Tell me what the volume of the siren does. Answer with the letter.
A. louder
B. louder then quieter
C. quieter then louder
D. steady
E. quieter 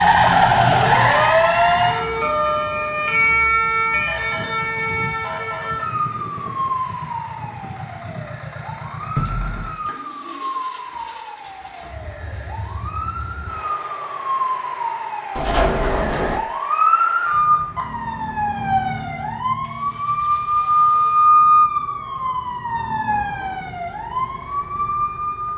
C.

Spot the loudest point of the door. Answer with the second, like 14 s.
16 s.